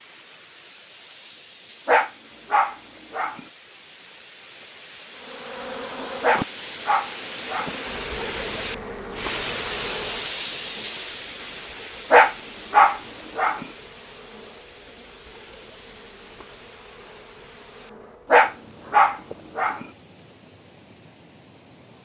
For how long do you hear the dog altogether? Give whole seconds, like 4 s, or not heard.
6 s.